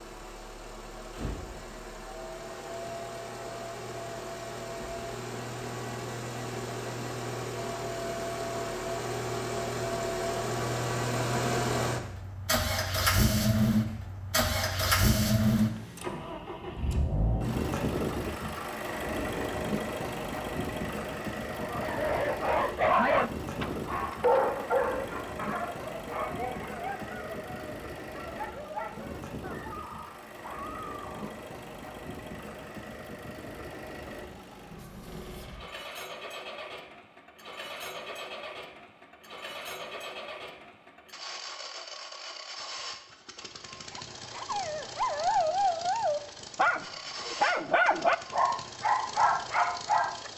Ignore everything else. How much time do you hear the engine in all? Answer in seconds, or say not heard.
50 s.